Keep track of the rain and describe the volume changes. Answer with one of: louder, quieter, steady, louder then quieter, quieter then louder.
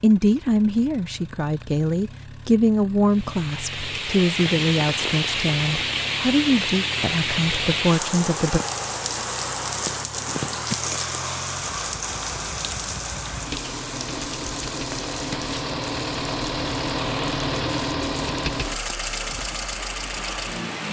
quieter.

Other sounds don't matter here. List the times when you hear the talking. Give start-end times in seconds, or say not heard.
0.0-8.6.